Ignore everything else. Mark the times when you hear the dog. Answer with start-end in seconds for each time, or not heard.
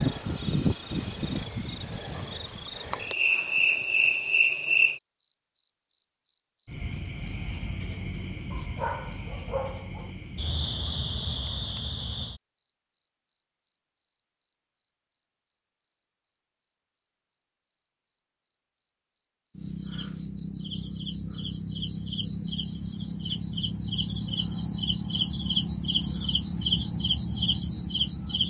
8.5-10.1.